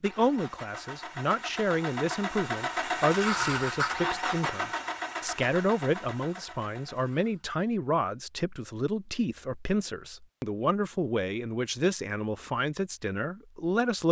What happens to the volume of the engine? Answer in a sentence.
The volume of the engine goes up, then down.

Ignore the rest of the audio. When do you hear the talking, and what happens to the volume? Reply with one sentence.
You can hear the talking from 0.0 to 14.0 s, at a steady volume.